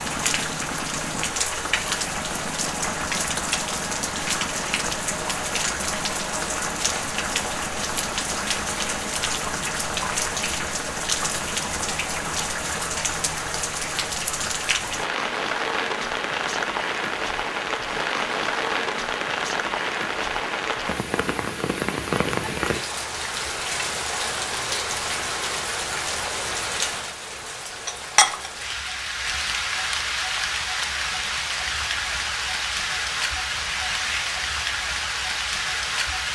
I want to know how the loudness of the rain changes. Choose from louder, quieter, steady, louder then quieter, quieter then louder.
steady.